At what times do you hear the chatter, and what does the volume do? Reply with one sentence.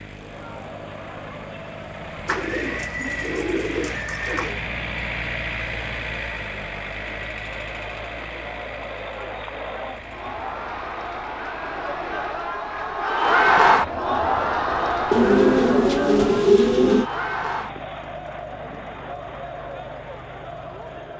The chatter can be heard from 0.0 to 21.1 s, getting louder then quieter.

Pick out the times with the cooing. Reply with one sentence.
The cooing can be heard from 2.2 to 4.6 s and from 15.1 to 17.1 s.